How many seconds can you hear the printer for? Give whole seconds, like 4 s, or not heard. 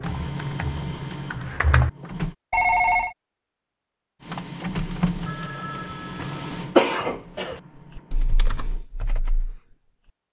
7 s.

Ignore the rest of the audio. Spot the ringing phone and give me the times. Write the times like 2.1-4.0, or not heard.
2.5-3.1, 5.2-6.4.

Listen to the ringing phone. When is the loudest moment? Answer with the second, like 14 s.
3 s.